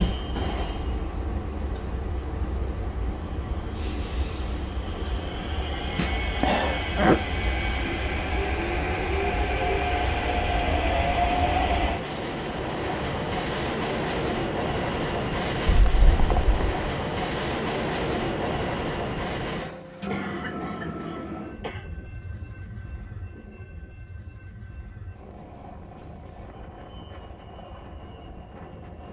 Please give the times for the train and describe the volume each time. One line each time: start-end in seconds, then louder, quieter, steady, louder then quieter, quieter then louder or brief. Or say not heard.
0.0-29.0 louder then quieter.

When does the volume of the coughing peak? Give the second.
7 s.